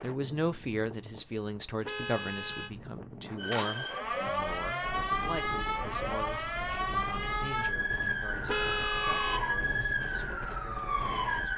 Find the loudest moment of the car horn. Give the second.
9 s.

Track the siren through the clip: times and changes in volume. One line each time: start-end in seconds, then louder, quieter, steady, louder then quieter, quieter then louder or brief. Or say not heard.
3.4-11.5 steady.